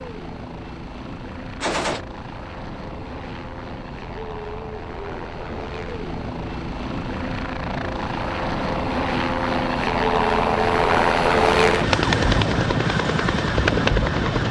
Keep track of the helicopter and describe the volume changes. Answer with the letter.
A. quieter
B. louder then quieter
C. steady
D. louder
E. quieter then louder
D.